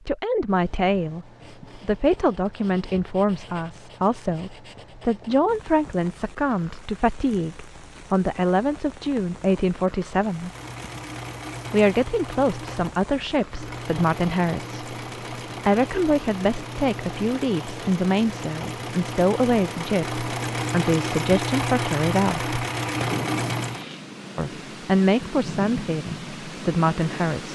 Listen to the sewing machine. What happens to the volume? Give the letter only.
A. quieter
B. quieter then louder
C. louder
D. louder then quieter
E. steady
C.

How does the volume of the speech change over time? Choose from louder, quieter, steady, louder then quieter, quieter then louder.
steady.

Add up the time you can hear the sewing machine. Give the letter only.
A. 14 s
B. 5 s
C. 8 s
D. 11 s
A.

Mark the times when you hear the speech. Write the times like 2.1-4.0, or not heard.
0.1-10.5, 11.7-14.8, 15.7-22.6, 24.4-27.5.